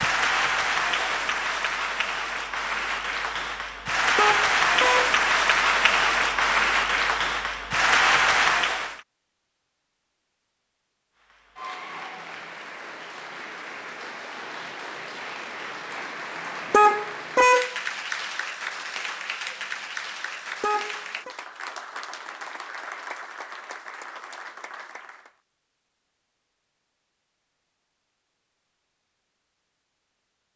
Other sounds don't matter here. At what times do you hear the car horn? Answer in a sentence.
The car horn can be heard from 4.2 to 5.1 s, from 16.7 to 17.8 s and from 20.6 to 21.4 s.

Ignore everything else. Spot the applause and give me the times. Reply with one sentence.
The applause can be heard from 0.0 to 9.0 s and from 11.2 to 25.4 s.